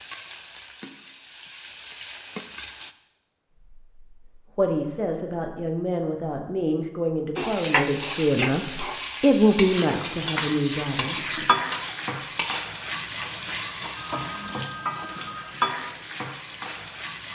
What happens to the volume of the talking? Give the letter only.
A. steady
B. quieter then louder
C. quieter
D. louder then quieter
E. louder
D.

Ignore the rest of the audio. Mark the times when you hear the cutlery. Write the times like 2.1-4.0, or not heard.
8.0-12.8.